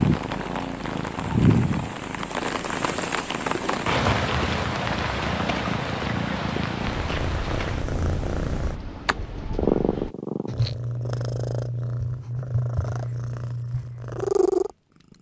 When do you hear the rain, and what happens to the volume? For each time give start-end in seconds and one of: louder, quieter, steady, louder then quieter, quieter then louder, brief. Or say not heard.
0.0-10.2 quieter.